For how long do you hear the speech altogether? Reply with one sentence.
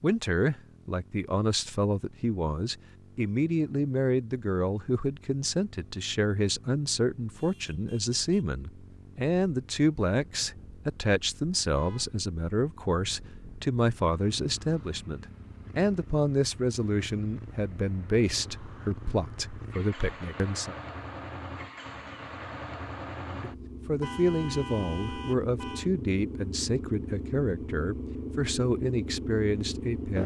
You can hear the speech for 28 seconds altogether.